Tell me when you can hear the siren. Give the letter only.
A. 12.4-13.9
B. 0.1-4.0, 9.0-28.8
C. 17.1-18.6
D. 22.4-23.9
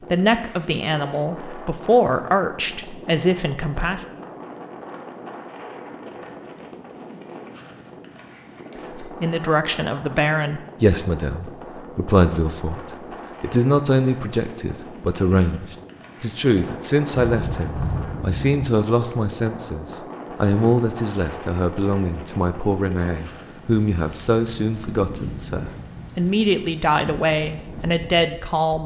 C.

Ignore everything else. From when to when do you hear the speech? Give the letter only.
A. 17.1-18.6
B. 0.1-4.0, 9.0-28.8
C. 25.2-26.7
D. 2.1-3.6
B.